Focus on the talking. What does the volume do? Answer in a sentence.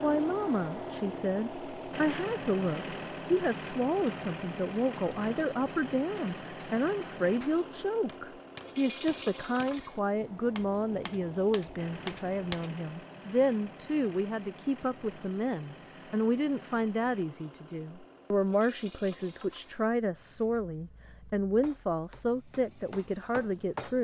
The loudness of the talking stays about the same.